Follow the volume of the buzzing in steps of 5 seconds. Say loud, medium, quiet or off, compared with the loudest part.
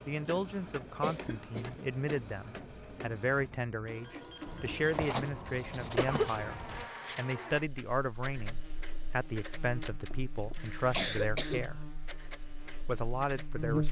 off, medium, loud.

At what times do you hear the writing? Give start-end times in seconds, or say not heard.
4.5-6.9.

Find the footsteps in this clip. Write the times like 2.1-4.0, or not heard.
not heard.